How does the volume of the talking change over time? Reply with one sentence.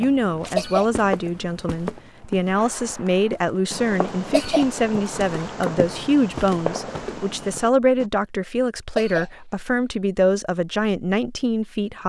The volume of the talking stays about the same.